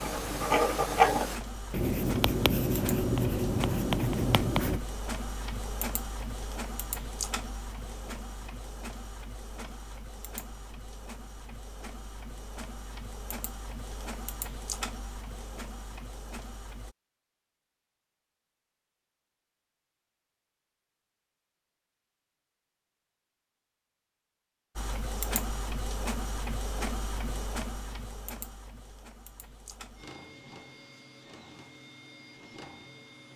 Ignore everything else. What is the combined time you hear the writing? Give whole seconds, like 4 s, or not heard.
5 s.